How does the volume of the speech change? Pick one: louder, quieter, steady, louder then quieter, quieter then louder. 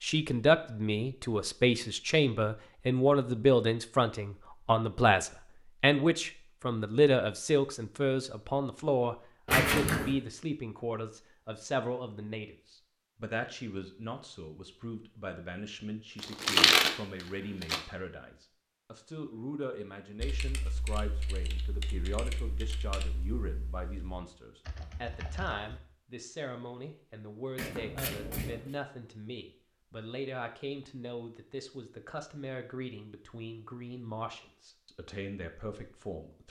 quieter.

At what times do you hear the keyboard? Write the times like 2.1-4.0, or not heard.
20.2-25.8.